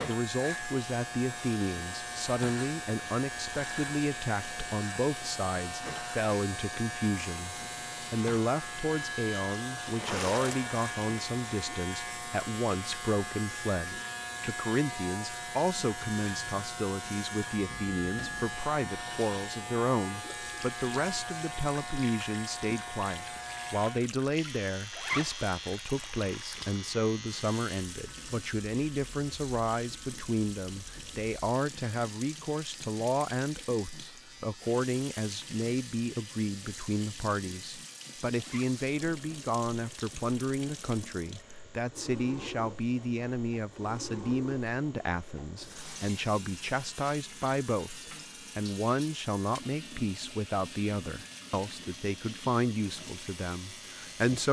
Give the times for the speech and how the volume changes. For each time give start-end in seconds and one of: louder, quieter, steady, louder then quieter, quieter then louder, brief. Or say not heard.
0.1-54.4 steady.